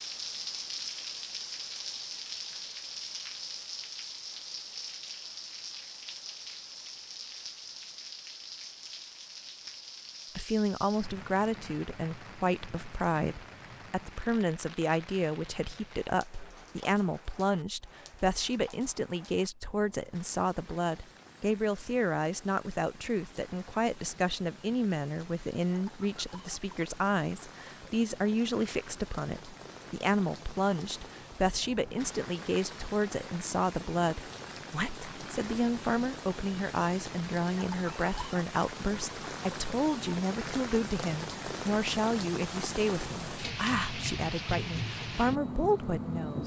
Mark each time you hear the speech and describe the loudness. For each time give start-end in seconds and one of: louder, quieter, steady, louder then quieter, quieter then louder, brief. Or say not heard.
10.3-46.4 steady.